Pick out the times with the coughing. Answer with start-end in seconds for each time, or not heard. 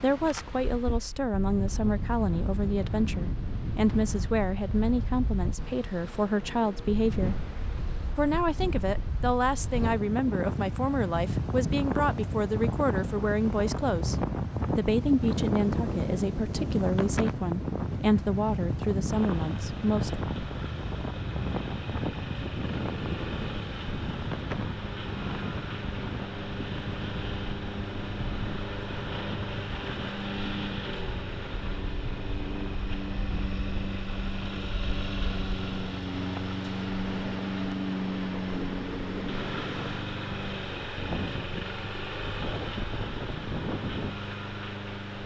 not heard.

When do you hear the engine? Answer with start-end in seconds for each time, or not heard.
19.1-45.2.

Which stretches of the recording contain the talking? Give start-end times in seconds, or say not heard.
0.0-7.4, 8.2-14.2, 14.8-20.2.